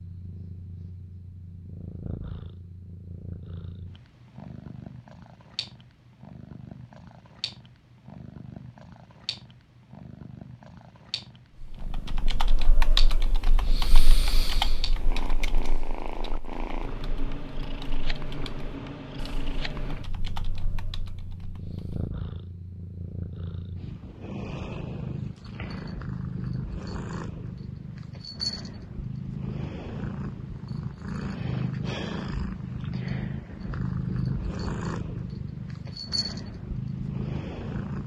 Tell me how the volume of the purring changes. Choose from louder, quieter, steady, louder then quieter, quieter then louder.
louder.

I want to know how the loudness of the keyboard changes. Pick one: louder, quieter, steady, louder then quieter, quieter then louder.
quieter then louder.